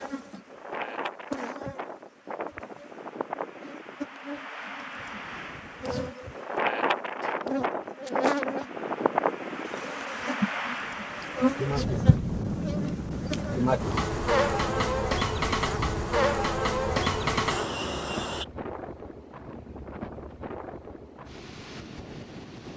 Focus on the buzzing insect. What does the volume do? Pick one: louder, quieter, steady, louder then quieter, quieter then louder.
louder.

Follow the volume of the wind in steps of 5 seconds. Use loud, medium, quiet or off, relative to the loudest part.
medium, loud, loud, medium, medium.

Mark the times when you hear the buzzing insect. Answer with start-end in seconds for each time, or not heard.
0.0-18.4.